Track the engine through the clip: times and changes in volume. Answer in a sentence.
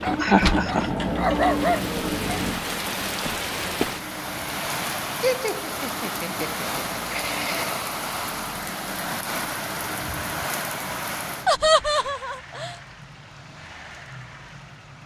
The engine can be heard from 0.0 to 15.0 s, getting quieter.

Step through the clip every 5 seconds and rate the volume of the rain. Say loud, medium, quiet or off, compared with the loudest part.
loud, loud, medium.